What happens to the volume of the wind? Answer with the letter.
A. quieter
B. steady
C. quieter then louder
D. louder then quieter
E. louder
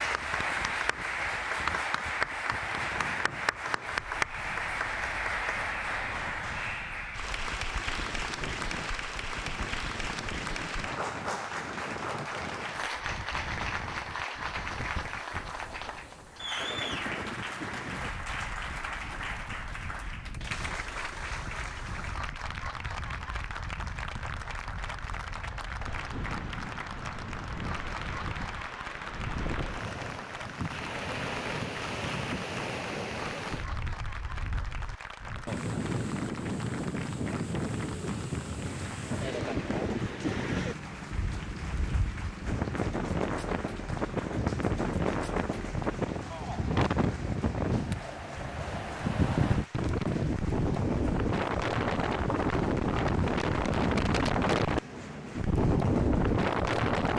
E.